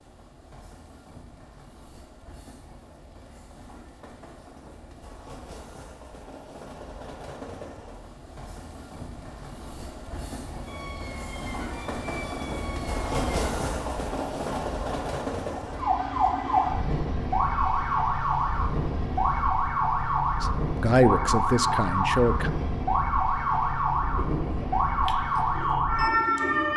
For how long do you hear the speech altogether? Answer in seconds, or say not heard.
2 s.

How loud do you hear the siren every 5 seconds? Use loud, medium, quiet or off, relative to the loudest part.
off, off, quiet, loud, loud, loud.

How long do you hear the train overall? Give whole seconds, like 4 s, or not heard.
27 s.